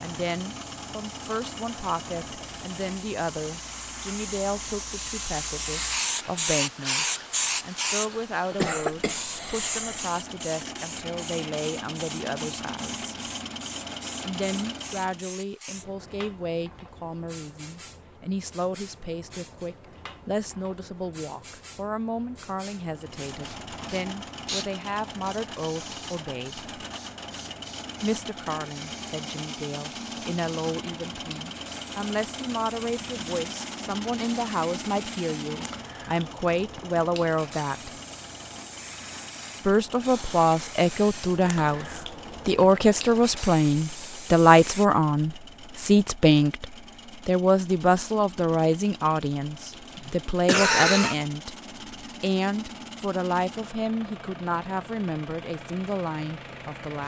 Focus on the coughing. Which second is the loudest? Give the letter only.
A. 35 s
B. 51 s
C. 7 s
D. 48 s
B.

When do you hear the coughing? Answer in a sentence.
You can hear the coughing from 8.5 to 10.1 s and from 49.7 to 51.1 s.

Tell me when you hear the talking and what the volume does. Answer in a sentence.
You can hear the talking from 0.0 to 13.2 s, at a steady volume; from 14.2 to 26.6 s, at a steady volume; from 28.0 to 37.9 s, getting louder; and from 39.6 to 57.0 s, getting quieter.